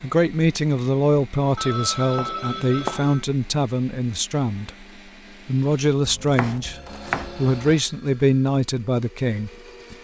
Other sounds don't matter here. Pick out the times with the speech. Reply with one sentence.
The speech can be heard from 0.0 to 4.8 s and from 5.5 to 9.9 s.